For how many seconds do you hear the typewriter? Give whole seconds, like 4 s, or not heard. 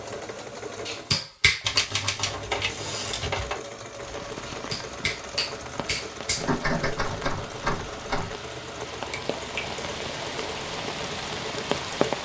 4 s.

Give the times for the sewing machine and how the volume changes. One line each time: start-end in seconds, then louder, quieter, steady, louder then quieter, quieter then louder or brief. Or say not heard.
0.0-12.2 steady.